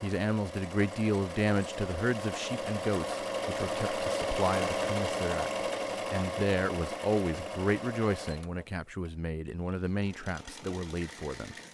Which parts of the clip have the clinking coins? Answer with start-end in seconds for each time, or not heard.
not heard.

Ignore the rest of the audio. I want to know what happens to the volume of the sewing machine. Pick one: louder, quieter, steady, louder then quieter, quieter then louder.
louder then quieter.